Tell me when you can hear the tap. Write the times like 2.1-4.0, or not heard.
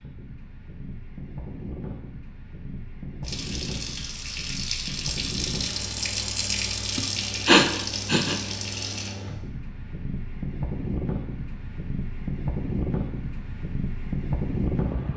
3.2-9.2.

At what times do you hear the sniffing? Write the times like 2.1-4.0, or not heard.
7.0-8.4.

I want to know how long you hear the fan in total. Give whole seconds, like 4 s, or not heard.
15 s.